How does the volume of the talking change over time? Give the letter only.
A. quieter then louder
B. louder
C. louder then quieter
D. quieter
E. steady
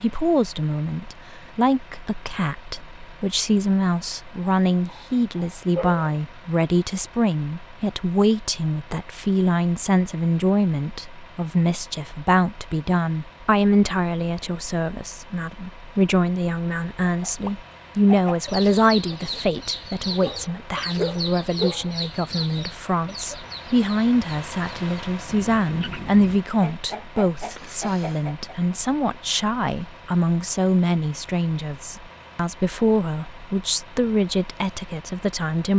E.